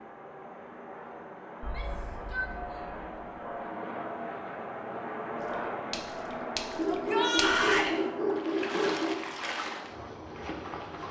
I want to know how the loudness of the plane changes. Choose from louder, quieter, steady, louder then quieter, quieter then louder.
louder then quieter.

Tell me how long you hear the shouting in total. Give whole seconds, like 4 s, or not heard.
2 s.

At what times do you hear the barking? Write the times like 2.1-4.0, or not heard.
1.6-3.6, 6.8-9.2.